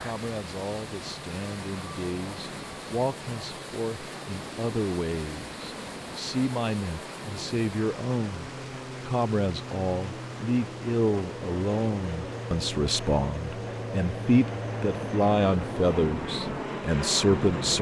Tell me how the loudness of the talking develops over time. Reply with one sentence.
The loudness of the talking goes up.